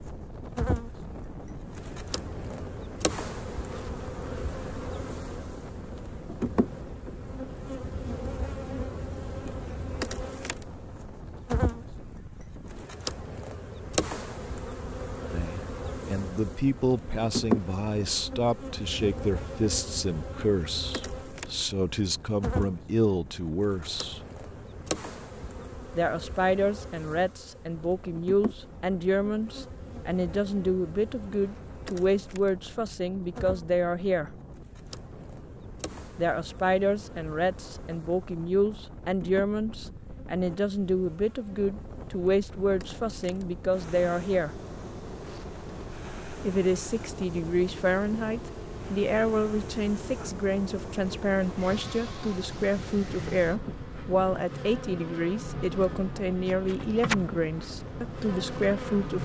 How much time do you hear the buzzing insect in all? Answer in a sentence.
You can hear the buzzing insect for 59 seconds altogether.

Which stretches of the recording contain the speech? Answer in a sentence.
The speech can be heard from 15.3 to 24.2 s, from 25.9 to 34.4 s, from 36.1 to 44.6 s and from 46.4 to 59.2 s.